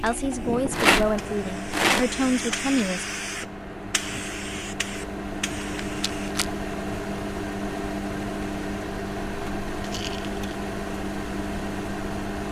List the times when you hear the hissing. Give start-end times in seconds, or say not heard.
0.1-6.3.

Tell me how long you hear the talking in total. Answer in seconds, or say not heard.
3 s.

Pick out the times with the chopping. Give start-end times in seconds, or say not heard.
not heard.